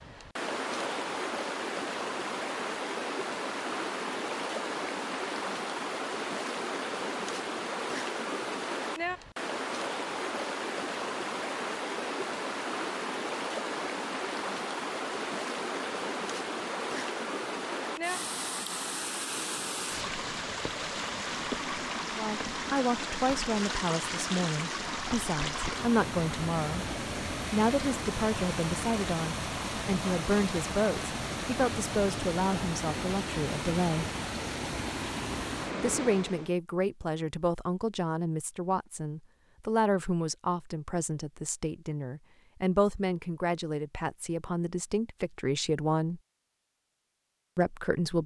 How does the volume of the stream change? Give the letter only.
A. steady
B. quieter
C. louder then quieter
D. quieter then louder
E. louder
A.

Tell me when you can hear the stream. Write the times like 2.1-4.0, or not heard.
0.0-36.5.